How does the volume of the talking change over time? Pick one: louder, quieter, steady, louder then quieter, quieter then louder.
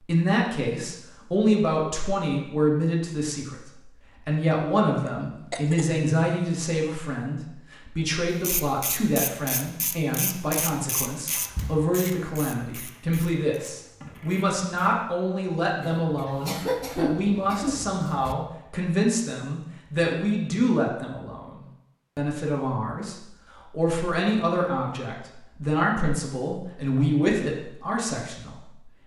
steady.